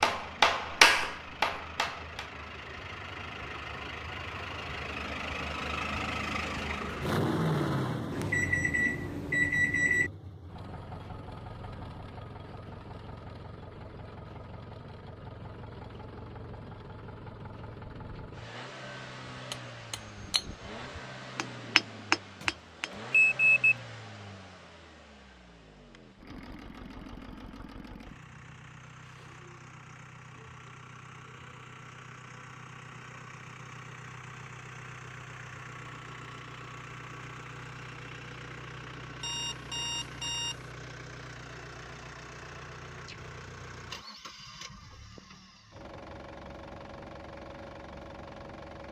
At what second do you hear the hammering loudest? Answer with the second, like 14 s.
1 s.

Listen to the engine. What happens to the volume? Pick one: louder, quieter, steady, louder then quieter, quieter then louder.
quieter.